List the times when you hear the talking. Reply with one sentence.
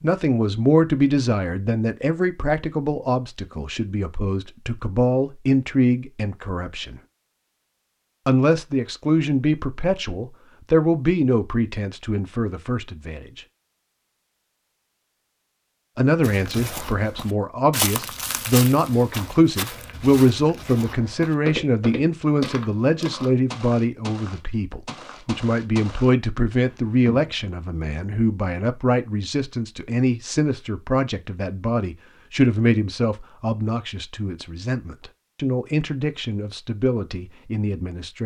The talking can be heard from 0.0 to 7.0 s, from 8.2 to 13.4 s and from 15.9 to 38.2 s.